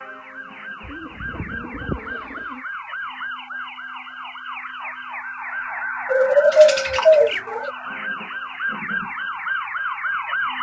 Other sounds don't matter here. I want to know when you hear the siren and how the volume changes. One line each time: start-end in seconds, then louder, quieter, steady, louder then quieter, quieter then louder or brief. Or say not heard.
0.0-10.5 louder.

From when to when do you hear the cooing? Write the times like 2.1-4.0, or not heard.
0.8-2.6, 6.1-7.7.